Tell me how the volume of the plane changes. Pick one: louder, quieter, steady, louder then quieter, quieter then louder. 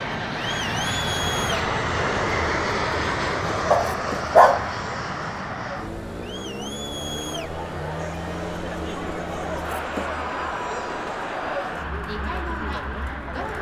quieter.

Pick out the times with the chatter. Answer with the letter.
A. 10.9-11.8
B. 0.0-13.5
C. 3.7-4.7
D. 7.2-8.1
B.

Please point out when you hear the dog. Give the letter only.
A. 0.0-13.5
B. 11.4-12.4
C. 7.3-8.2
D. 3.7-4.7
D.